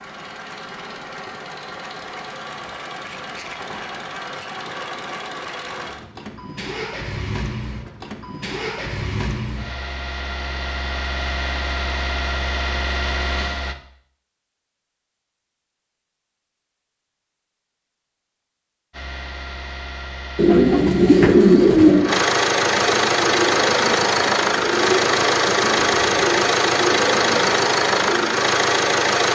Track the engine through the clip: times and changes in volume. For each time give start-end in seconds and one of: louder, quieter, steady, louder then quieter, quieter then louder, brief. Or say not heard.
0.0-13.8 louder
18.9-29.3 louder.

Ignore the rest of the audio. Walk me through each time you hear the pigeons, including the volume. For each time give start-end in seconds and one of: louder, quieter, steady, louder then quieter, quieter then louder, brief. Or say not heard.
20.4-28.2 quieter.